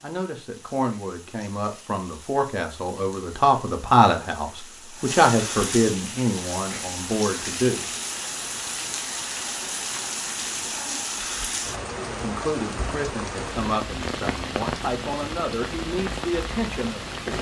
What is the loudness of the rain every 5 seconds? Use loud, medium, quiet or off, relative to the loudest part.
quiet, loud, loud, loud.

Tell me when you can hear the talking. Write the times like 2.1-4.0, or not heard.
0.0-7.9, 12.2-17.3.